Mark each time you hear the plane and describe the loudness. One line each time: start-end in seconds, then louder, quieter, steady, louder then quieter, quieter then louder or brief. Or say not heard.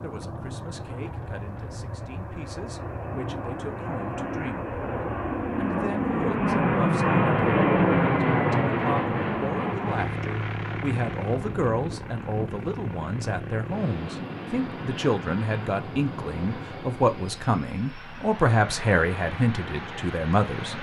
0.0-20.7 louder then quieter.